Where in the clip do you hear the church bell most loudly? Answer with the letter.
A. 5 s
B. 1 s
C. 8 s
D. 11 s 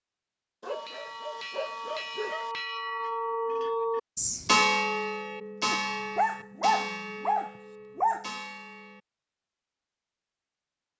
A.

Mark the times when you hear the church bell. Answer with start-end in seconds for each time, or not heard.
0.7-9.0.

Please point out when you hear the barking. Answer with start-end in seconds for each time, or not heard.
0.6-2.5, 5.7-8.3.